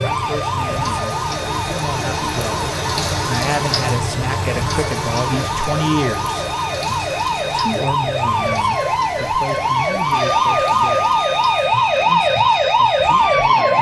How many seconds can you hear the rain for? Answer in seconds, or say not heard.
14 s.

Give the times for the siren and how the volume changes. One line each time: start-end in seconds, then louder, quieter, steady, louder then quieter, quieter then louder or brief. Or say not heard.
0.0-13.7 louder.